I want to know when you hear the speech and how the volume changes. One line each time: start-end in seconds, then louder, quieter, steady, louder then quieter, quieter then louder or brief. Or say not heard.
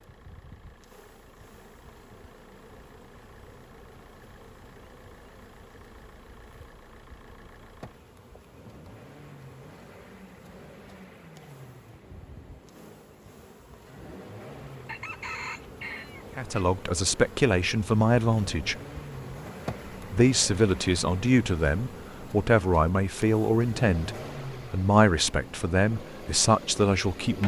16.4-18.8 brief
20.1-24.1 steady
24.7-27.4 brief.